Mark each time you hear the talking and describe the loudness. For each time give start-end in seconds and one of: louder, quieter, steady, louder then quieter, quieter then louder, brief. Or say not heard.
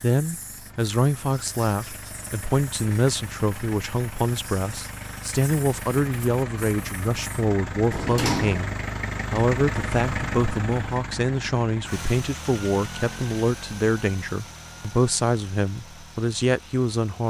0.0-17.2 steady.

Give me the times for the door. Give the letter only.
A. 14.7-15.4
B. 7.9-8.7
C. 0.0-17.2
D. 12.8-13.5
B.